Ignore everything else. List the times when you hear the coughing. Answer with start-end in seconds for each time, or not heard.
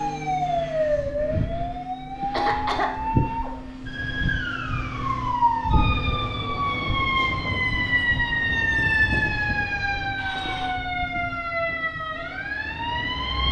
2.3-2.9, 10.2-10.8.